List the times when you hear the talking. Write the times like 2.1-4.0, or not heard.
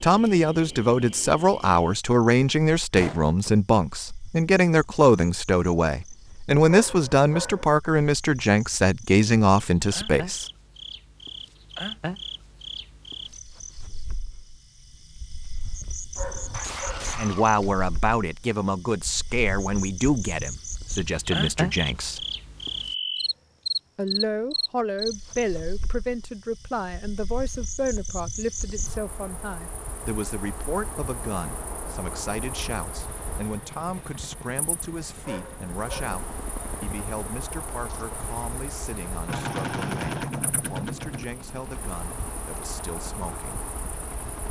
0.0-10.4, 17.1-22.2, 23.9-43.7.